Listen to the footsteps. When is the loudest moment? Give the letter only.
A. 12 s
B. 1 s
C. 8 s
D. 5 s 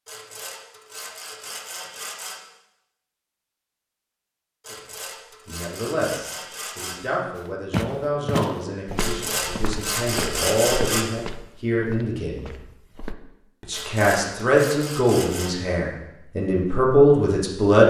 C.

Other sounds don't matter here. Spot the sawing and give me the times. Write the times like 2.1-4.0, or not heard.
0.1-2.4, 4.6-7.1, 8.9-11.1, 13.7-15.6.